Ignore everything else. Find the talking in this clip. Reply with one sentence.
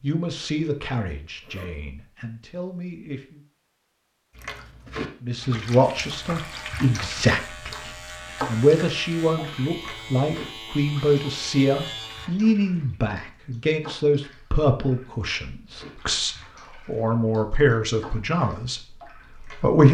The talking can be heard from 0.0 to 3.4 s and from 5.2 to 19.8 s.